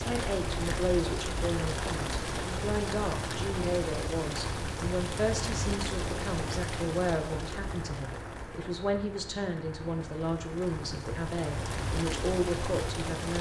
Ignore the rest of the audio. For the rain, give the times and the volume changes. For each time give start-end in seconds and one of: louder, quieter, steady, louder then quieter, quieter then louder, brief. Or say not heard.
0.0-13.3 quieter then louder.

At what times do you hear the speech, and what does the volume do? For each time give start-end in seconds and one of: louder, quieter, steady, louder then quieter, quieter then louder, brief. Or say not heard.
0.0-13.3 steady.